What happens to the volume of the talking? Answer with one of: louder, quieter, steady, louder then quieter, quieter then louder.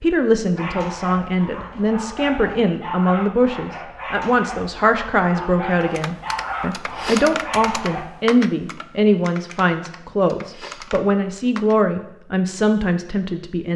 steady.